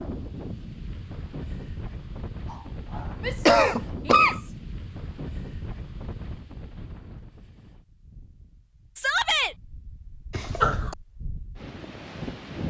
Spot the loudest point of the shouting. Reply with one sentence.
The volume of the shouting peaks at 9 seconds.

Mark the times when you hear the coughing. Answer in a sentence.
You can hear the coughing from 2.5 to 4.4 s and from 10.3 to 10.9 s.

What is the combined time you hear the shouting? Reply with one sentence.
You can hear the shouting for 2 seconds altogether.